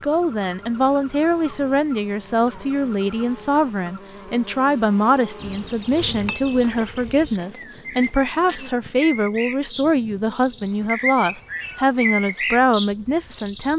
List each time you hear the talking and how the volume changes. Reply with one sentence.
The talking can be heard from 0.0 to 13.7 s, at a steady volume.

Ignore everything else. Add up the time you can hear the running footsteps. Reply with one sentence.
The running footsteps can't be heard in this clip.